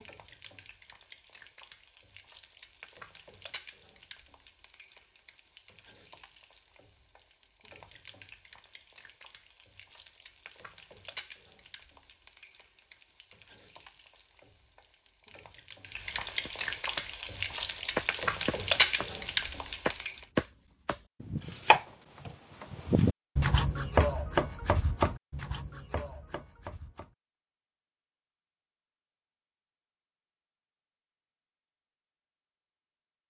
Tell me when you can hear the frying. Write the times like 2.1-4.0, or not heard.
0.0-20.2.